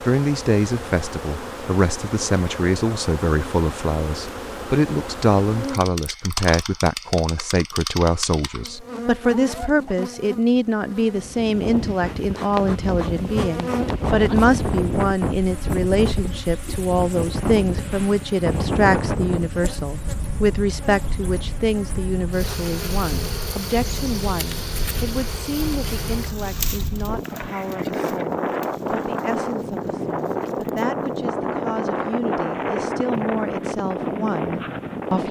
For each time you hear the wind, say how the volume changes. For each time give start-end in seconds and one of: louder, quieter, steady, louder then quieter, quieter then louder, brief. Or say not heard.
11.2-35.2 quieter then louder.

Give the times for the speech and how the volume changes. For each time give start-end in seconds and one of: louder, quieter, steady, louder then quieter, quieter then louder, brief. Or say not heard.
0.0-35.2 quieter.